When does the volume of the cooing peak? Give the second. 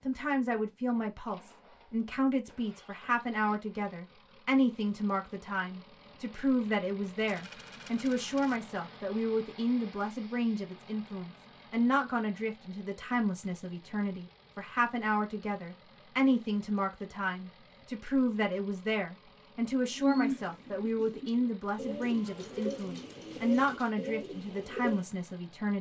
20 s.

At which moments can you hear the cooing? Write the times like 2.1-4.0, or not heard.
19.9-25.1.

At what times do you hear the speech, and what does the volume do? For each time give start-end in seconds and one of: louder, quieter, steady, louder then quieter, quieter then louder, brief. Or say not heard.
0.0-25.7 steady.